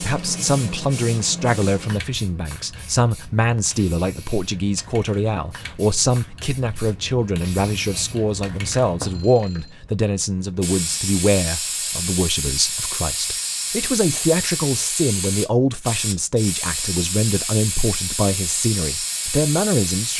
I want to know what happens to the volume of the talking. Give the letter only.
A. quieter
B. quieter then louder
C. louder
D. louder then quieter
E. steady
E.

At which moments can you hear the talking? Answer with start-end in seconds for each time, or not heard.
0.0-20.1.